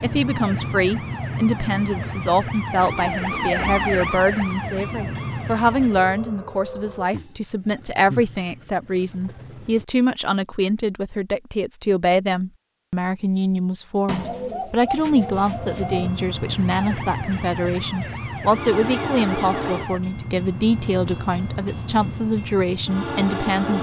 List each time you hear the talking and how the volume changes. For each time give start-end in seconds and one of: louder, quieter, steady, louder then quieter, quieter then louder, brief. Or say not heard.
0.0-23.7 steady.